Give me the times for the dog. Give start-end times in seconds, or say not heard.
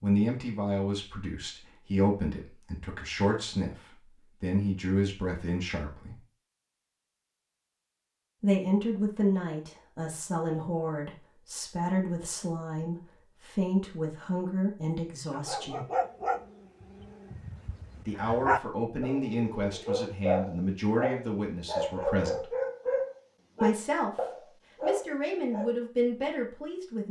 15.3-25.8.